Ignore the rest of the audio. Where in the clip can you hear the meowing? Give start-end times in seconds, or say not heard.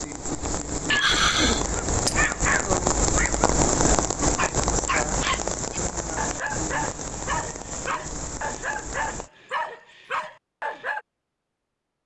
0.9-2.2.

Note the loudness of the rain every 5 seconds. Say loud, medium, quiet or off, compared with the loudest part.
loud, medium, off.